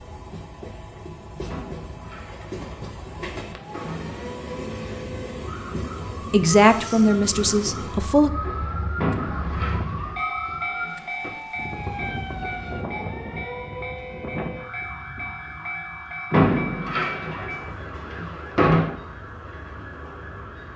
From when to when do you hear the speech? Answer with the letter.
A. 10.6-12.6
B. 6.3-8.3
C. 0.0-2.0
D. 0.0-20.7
B.